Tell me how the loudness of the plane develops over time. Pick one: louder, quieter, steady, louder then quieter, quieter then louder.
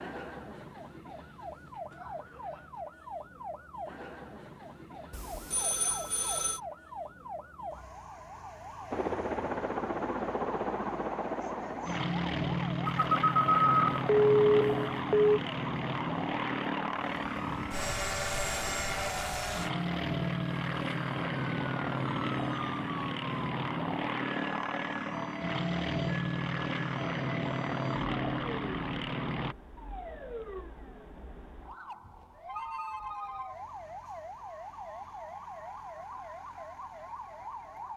steady.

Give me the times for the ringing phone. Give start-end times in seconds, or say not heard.
5.1-6.6, 12.8-15.3, 32.0-33.5.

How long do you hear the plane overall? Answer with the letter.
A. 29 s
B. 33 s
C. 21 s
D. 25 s
C.